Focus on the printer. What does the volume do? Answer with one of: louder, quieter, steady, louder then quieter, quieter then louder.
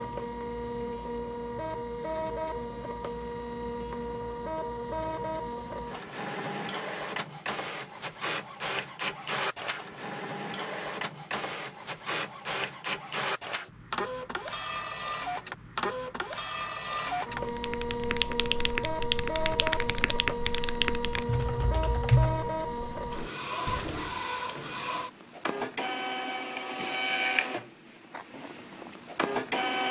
steady.